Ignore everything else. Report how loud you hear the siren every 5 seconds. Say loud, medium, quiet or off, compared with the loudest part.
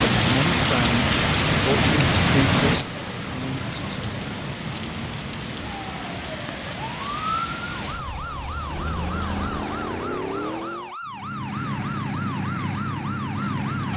off, loud, loud.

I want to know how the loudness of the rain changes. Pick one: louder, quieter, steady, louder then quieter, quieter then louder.
quieter.